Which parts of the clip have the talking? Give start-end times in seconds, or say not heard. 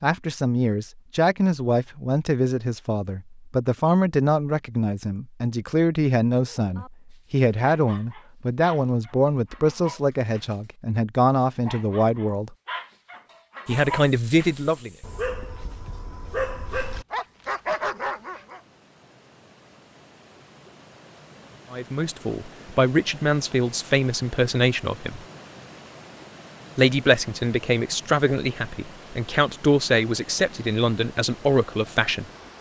0.0-12.6, 13.7-14.9, 21.7-25.2, 26.8-32.2.